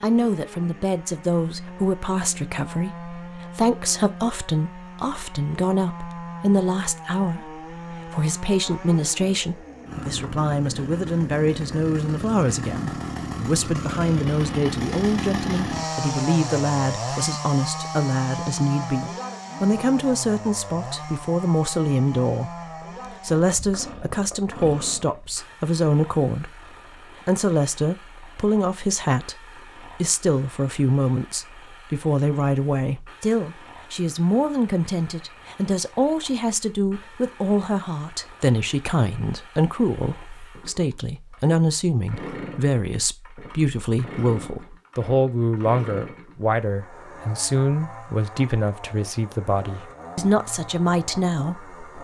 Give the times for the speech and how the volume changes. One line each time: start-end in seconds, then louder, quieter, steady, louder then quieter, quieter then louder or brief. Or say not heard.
0.0-22.6 steady
23.2-51.8 steady.